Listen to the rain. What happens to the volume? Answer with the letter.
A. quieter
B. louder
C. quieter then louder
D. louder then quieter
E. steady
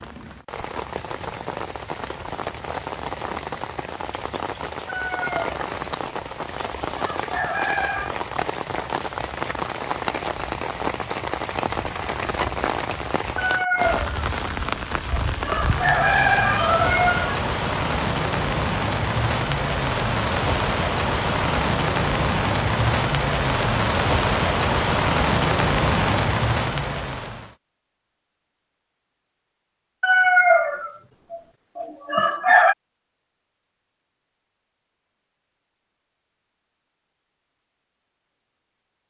B.